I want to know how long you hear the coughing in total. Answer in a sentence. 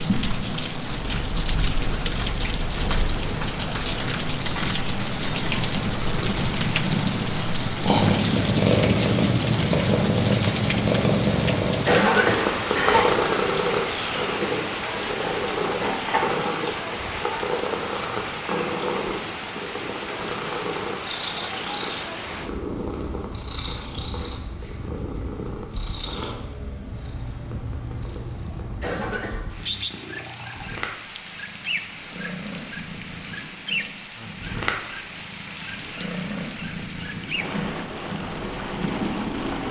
You can hear the coughing for 2 seconds altogether.